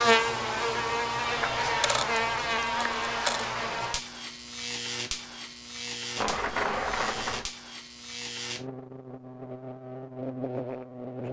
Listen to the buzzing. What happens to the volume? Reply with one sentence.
The loudness of the buzzing goes down.